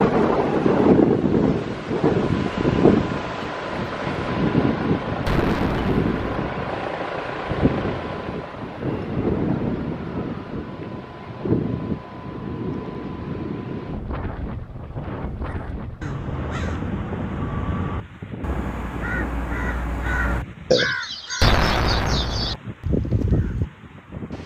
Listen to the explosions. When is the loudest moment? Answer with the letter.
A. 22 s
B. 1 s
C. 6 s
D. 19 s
A.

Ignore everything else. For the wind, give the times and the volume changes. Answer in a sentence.
The wind can be heard from 0.0 to 24.4 s, getting quieter.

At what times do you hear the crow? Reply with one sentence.
You can hear the crow from 15.3 to 23.7 s.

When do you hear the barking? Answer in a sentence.
The barking can't be heard in this clip.